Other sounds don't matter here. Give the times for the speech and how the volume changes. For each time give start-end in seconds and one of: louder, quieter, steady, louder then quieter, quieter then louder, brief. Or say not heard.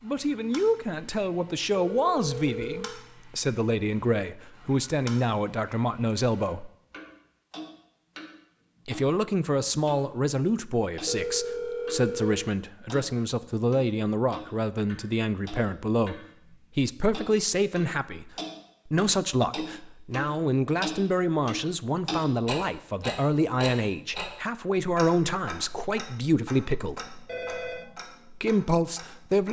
0.0-6.7 steady
8.8-27.1 steady
28.4-29.4 brief.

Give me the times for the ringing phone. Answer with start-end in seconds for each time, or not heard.
1.7-3.0, 11.1-12.5, 27.2-27.9.